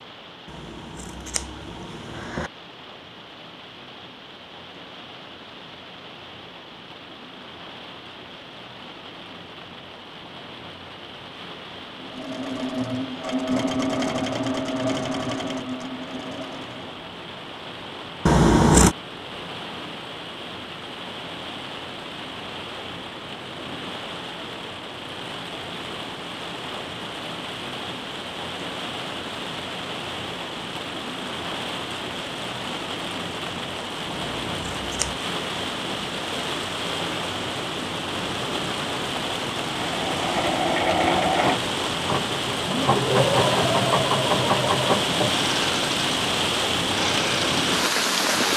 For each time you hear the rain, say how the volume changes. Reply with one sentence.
The rain can be heard from 0.0 to 48.5 s, getting louder.